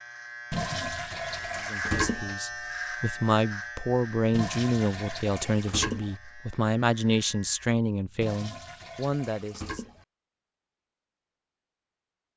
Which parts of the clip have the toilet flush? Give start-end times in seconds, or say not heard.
0.5-2.4, 4.3-6.2, 8.2-10.1.